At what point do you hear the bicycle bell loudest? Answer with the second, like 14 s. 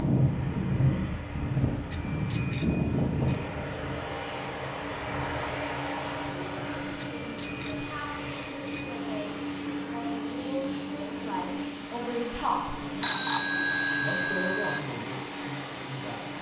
13 s.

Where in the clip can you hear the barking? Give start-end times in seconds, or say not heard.
not heard.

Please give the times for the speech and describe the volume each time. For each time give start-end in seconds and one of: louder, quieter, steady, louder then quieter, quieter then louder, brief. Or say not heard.
6.5-12.8 louder
14.0-16.2 brief.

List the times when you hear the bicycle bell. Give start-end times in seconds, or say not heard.
1.9-3.5, 7.0-9.1, 13.0-14.8.